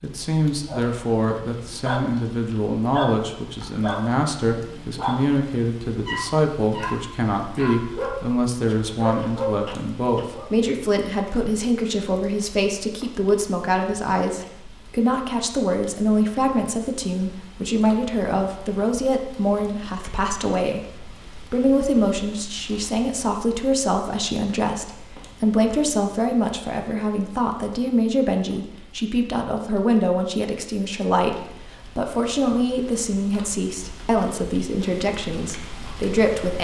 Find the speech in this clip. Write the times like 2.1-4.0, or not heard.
0.0-36.5.